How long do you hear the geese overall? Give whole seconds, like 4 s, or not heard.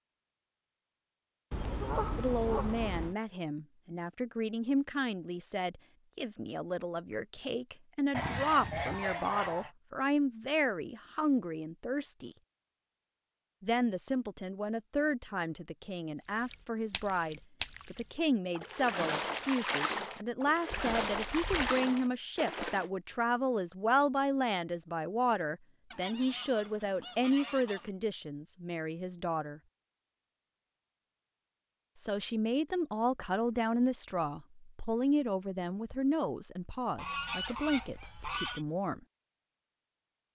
8 s.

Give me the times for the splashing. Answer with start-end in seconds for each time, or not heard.
16.2-22.9.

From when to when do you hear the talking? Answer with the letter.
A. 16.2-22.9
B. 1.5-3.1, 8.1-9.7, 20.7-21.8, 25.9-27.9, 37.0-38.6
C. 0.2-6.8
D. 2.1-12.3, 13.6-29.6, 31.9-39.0
D.